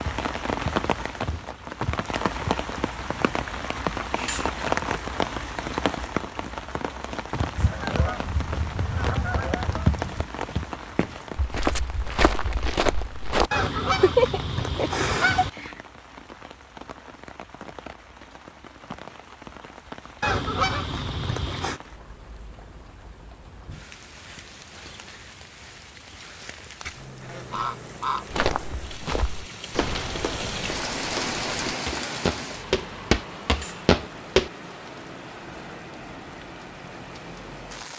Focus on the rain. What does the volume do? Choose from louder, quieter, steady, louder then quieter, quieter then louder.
quieter then louder.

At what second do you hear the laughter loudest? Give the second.
14 s.